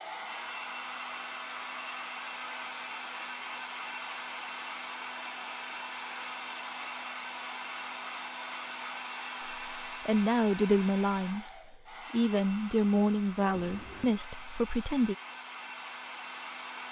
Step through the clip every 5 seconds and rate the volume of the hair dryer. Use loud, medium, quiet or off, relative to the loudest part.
loud, loud, medium, loud.